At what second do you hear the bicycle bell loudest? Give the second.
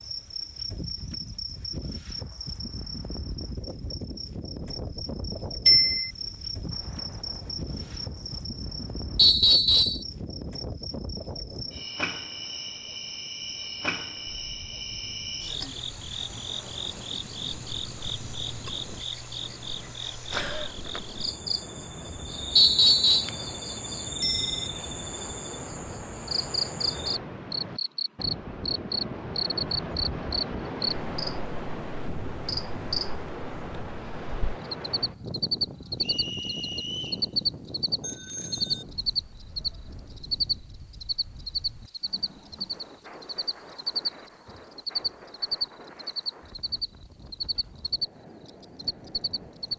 6 s.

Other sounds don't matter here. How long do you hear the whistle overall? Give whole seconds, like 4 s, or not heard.
3 s.